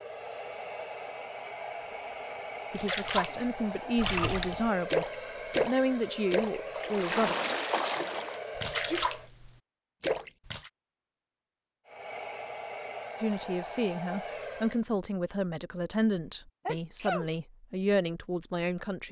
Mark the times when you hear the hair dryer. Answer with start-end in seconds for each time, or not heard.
0.0-9.3, 11.8-14.8.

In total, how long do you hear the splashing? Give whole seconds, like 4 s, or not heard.
8 s.